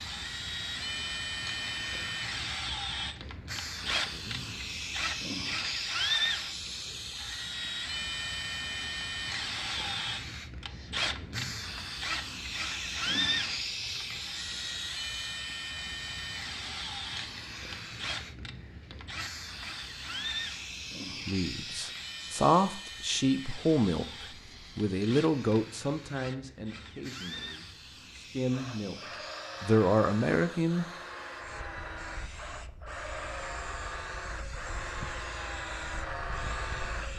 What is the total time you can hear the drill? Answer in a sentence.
You can hear the drill for 37 seconds altogether.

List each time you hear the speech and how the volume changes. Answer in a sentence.
The speech can be heard from 21.2 to 28.9 s, getting quieter; and briefly from 29.6 to 30.9 s.